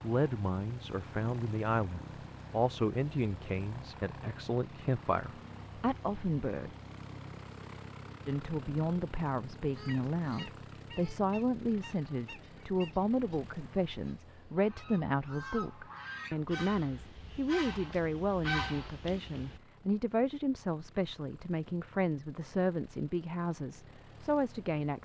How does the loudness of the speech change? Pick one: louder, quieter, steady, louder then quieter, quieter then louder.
steady.